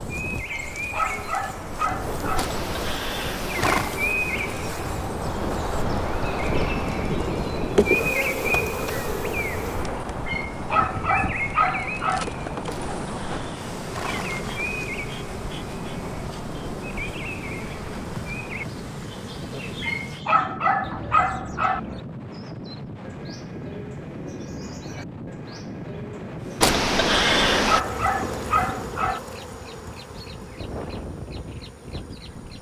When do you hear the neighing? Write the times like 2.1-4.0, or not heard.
2.4-4.0, 12.7-14.4, 26.6-27.8.